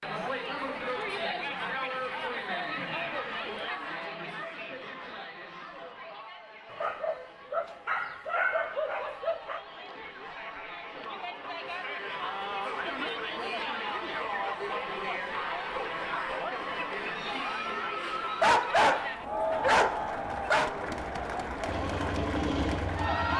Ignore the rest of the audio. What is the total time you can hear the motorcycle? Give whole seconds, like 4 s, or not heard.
2 s.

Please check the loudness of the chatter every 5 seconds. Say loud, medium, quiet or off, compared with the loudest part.
loud, quiet, loud, loud, loud.